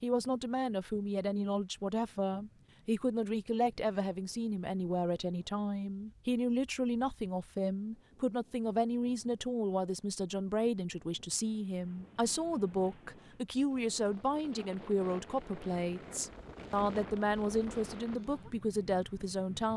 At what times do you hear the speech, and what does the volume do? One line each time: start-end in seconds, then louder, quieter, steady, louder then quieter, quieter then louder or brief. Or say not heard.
0.0-19.7 steady.